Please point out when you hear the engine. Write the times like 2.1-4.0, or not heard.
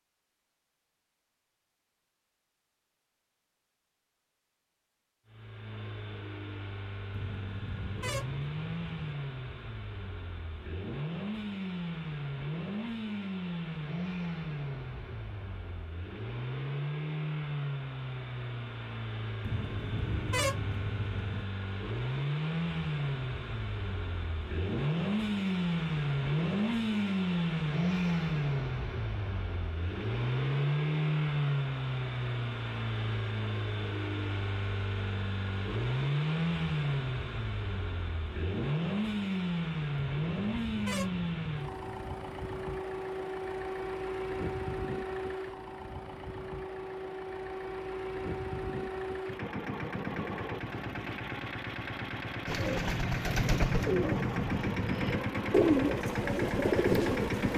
5.2-57.5.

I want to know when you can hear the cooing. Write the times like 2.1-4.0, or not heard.
52.5-57.5.